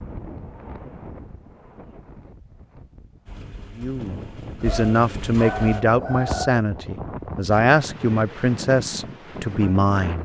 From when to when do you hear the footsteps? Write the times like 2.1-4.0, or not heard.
not heard.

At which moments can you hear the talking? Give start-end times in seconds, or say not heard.
3.8-10.2.